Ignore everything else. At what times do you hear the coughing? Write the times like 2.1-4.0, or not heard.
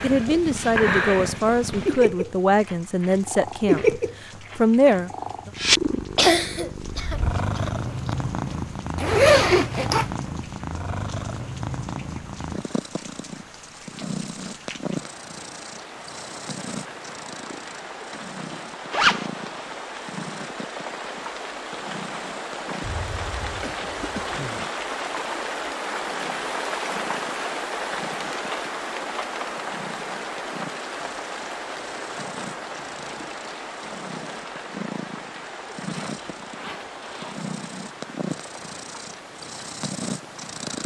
6.2-8.2, 22.8-24.6.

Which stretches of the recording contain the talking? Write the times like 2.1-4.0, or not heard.
0.0-5.5.